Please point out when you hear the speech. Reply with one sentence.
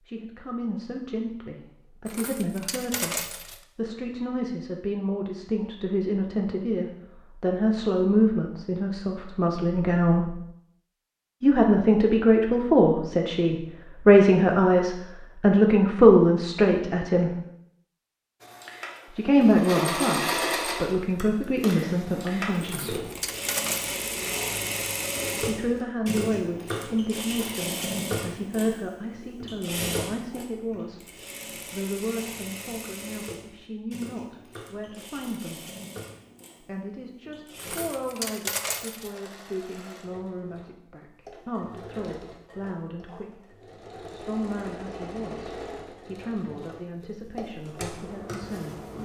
The speech can be heard from 0.1 to 10.4 s, from 11.4 to 17.4 s, from 19.1 to 23.0 s, from 25.4 to 31.1 s, from 31.7 to 35.7 s and from 36.6 to 48.9 s.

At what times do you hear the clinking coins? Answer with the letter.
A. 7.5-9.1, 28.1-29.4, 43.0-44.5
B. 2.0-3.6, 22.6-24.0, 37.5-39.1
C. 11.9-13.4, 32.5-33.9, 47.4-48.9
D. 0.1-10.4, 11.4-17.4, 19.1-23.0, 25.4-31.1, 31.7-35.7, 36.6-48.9
B.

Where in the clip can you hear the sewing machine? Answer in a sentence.
The sewing machine can be heard from 18.4 to 48.9 s.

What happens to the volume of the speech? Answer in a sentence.
The loudness of the speech goes up, then down.